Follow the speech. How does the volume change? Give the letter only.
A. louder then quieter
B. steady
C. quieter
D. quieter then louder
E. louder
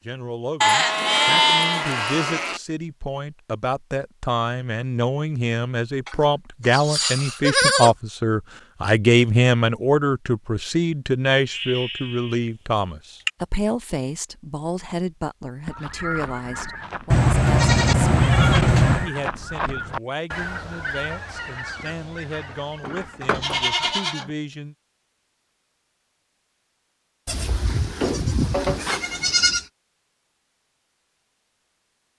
A.